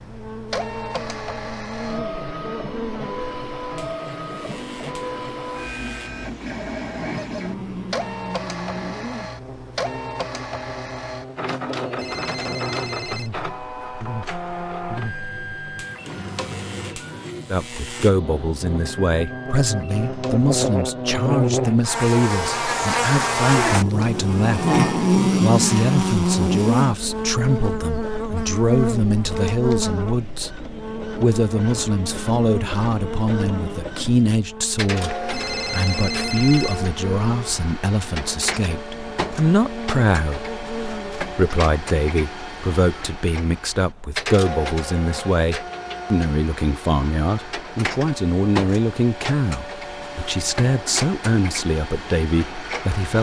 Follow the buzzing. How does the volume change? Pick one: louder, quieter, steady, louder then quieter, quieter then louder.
louder then quieter.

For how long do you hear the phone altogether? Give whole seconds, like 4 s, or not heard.
3 s.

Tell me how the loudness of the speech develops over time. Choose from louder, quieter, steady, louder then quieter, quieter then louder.
steady.